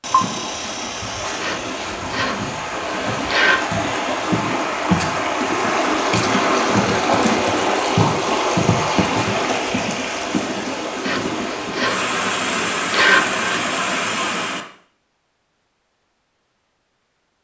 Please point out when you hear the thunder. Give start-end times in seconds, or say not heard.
not heard.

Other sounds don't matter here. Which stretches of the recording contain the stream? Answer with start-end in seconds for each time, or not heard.
0.0-14.7.